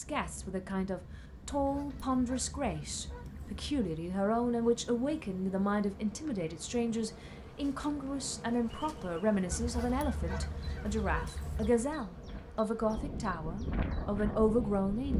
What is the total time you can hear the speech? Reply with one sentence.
The speech can be heard for 15 seconds in total.